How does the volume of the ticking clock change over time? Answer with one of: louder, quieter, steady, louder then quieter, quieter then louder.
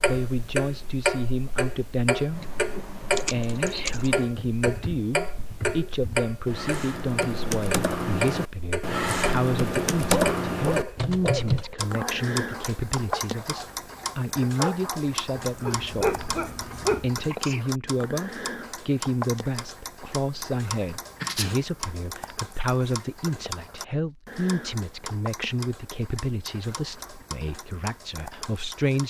quieter.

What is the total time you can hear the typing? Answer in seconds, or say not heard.
9 s.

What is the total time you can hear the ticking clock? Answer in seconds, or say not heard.
29 s.